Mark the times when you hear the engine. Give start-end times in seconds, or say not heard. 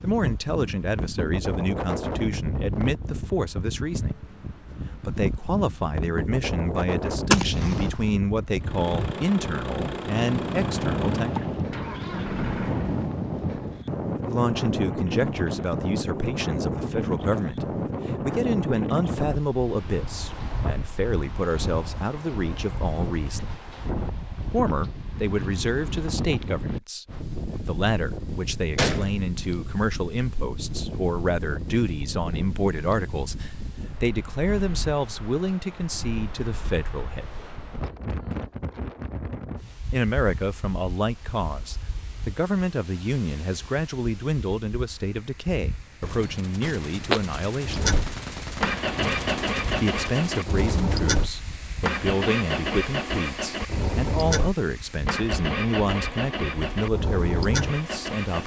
8.6-13.1, 47.6-58.4.